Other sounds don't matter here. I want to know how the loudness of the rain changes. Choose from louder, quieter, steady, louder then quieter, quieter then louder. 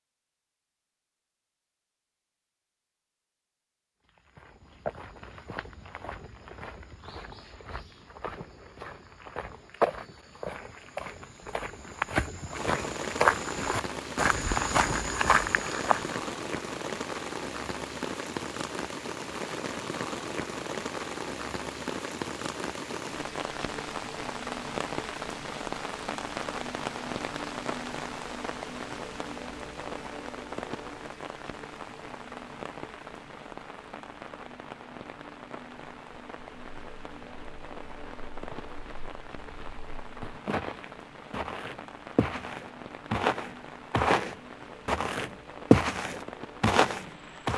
quieter.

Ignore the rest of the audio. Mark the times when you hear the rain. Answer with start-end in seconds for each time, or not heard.
12.5-47.5.